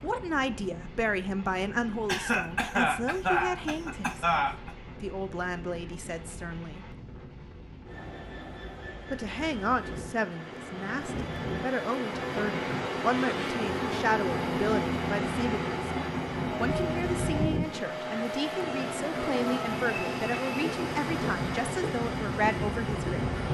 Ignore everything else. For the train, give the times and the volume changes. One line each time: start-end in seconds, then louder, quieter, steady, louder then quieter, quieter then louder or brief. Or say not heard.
0.0-23.4 louder.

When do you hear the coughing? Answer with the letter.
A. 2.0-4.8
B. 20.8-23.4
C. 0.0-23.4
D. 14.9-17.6
A.